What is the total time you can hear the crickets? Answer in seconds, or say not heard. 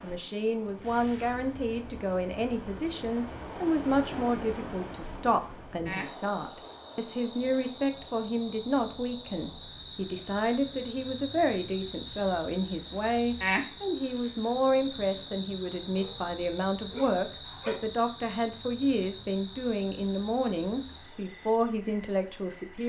23 s.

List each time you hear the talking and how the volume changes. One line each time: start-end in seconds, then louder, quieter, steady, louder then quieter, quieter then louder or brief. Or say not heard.
0.0-22.8 steady.